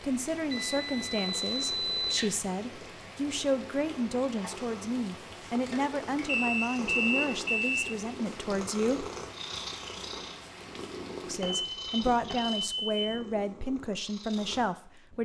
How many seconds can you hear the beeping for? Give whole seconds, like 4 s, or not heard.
6 s.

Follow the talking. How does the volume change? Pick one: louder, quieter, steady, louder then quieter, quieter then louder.
steady.